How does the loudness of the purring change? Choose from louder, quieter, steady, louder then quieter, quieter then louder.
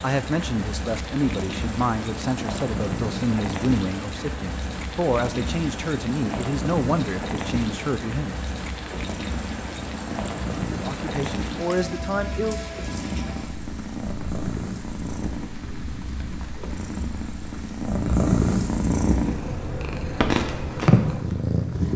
louder.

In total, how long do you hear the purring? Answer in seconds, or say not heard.
22 s.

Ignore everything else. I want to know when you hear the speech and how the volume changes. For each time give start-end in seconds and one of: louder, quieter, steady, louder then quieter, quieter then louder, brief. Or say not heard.
0.0-8.3 steady
10.7-12.7 brief.